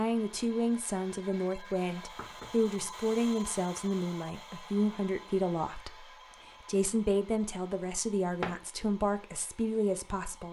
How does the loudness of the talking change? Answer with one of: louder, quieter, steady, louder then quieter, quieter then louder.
steady.